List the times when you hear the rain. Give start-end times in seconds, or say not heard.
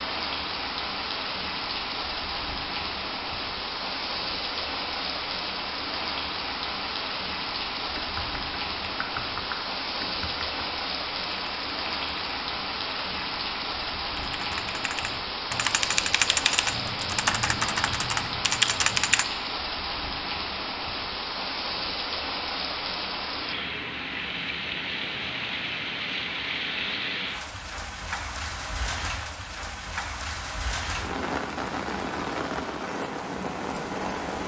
0.0-34.4.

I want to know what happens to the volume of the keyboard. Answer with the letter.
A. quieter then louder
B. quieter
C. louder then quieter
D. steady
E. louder
A.